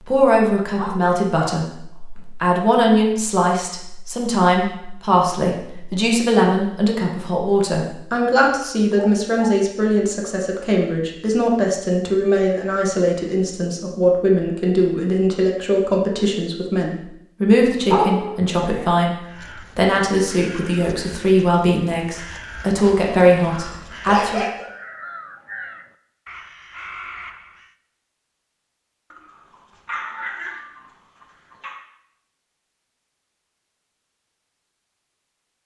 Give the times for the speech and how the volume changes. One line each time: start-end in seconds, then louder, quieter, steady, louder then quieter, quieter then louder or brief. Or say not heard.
0.0-24.4 steady.